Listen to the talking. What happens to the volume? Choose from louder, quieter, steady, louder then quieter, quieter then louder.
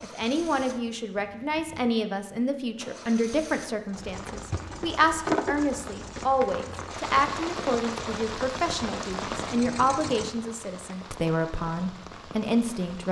steady.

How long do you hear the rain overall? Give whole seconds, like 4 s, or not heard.
9 s.